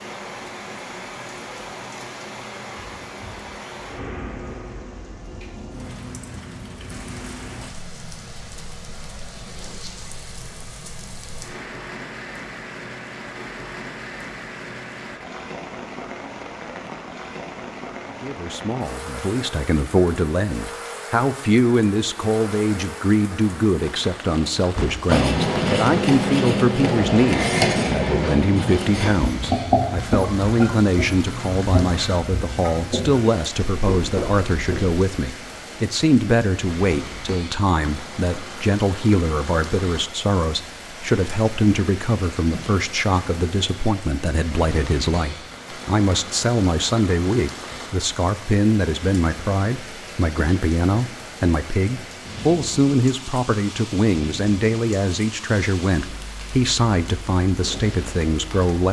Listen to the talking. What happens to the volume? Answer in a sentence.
The volume of the talking stays about the same.